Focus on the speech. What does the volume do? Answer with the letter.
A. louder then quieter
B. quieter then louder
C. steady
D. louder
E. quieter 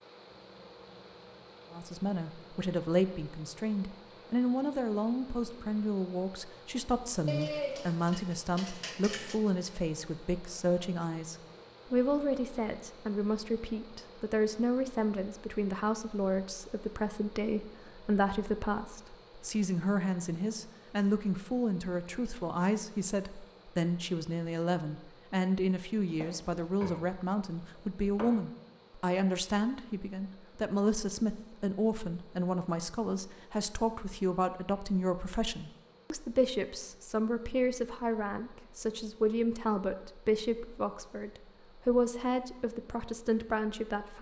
C.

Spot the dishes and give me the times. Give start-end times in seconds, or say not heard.
7.2-9.4, 26.2-27.1, 27.8-28.4.